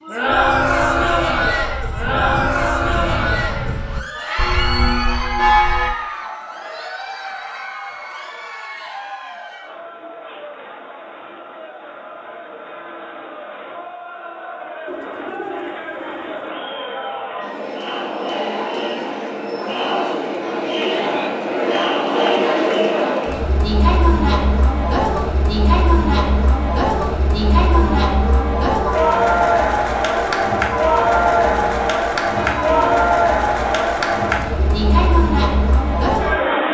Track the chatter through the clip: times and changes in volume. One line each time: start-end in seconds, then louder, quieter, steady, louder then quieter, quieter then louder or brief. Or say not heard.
0.0-36.6 quieter then louder.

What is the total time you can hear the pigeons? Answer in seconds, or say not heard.
2 s.